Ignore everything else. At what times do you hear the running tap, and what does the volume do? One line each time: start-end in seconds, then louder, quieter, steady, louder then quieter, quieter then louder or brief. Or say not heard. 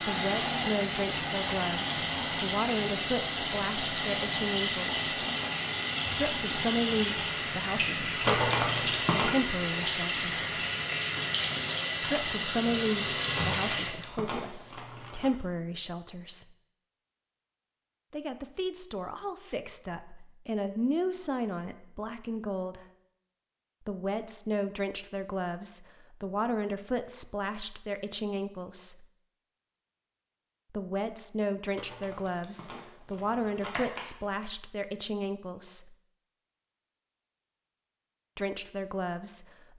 0.0-14.0 steady.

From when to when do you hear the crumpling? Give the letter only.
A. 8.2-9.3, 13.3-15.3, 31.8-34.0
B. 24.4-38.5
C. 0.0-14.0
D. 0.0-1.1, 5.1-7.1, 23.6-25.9
A.